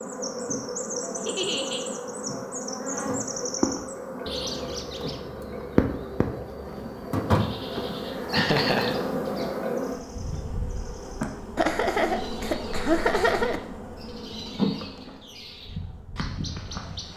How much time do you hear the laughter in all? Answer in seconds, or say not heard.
3 s.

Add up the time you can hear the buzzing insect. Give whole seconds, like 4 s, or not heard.
17 s.